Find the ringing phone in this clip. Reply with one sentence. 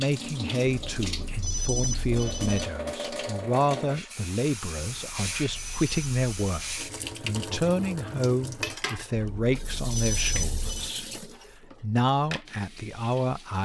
The ringing phone can be heard from 0.7 to 2.6 s, from 4.9 to 6.8 s and from 9.2 to 10.9 s.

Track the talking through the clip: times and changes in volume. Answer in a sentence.
The talking can be heard from 0.0 to 13.5 s, at a steady volume.